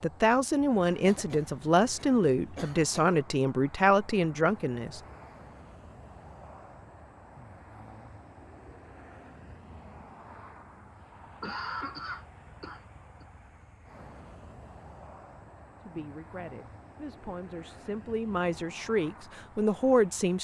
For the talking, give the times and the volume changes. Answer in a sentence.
The talking can be heard from 0.0 to 5.0 s, at a steady volume; and from 15.8 to 20.3 s, getting louder.